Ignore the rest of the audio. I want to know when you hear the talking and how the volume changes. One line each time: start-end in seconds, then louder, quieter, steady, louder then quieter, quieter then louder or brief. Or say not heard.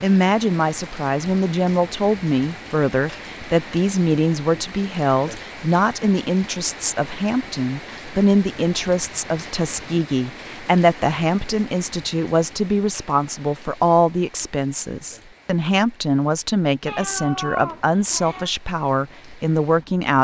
0.0-20.1 steady.